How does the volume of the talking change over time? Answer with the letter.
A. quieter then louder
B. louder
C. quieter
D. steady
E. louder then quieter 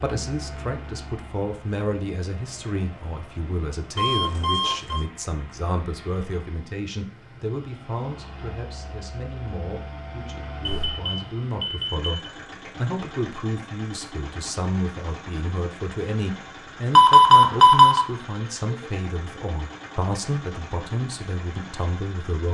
D.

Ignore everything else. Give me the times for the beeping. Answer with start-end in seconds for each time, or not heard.
4.0-5.0, 10.7-12.1, 16.9-18.1.